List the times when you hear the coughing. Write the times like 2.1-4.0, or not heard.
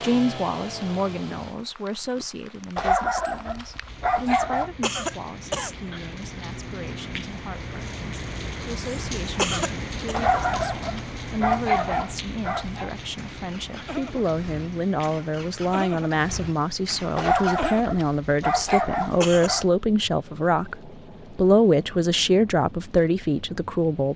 4.2-5.8, 8.8-10.2, 18.6-19.5.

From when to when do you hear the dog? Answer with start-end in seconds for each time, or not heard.
2.8-4.7, 10.1-12.9, 17.1-19.6.